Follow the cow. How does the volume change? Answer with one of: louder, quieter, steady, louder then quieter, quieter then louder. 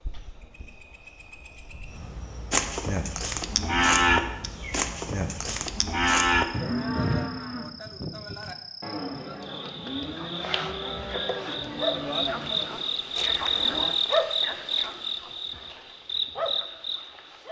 quieter.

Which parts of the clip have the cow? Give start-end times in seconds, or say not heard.
2.5-13.9.